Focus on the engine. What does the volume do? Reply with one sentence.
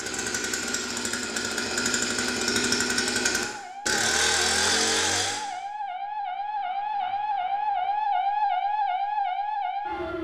The loudness of the engine goes up.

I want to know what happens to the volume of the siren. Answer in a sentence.
The loudness of the siren goes up.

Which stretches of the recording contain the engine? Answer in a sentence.
The engine can be heard from 0.0 to 5.5 s.